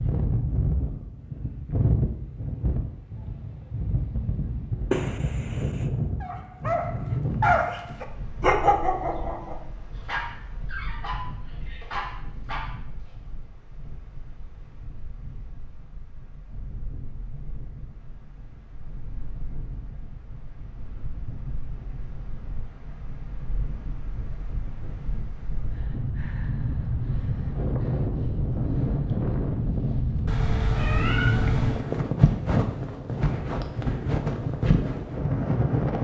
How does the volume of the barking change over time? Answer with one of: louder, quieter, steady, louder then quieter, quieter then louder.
quieter.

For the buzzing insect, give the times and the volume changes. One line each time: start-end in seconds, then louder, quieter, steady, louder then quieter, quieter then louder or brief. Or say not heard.
not heard.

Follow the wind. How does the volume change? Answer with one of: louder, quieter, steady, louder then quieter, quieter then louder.
quieter then louder.